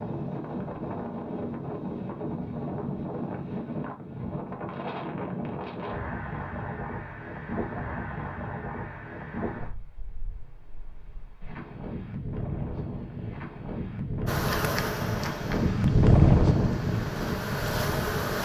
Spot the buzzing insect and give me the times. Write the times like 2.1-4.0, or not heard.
14.2-18.3.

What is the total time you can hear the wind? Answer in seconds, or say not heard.
18 s.